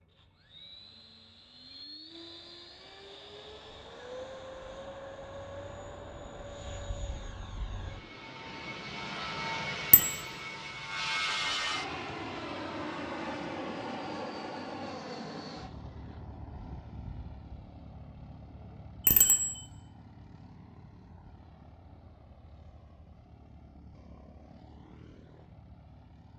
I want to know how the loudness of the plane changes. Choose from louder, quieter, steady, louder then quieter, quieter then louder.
louder then quieter.